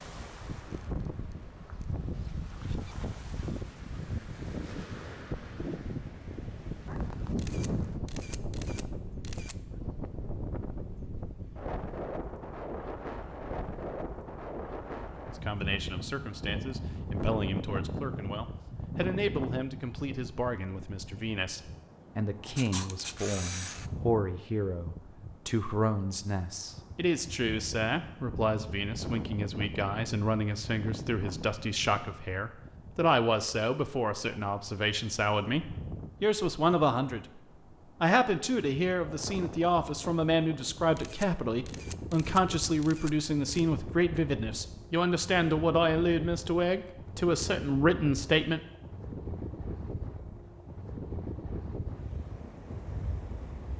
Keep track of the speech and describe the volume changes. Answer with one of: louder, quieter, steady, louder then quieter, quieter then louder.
louder.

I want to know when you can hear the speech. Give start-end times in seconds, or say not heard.
15.3-37.4, 38.0-48.6.